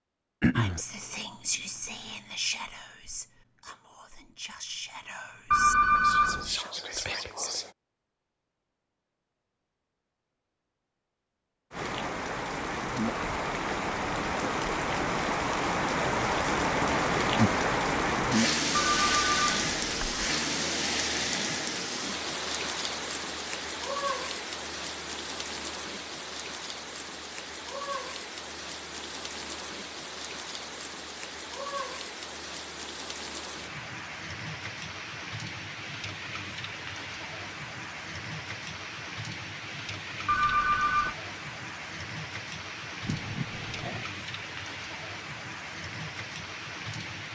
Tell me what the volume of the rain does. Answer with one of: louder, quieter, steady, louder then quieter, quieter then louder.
quieter.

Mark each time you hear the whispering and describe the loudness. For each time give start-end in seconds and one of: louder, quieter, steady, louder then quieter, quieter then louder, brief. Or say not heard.
0.6-7.7 quieter then louder.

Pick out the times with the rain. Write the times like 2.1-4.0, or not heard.
11.7-47.3.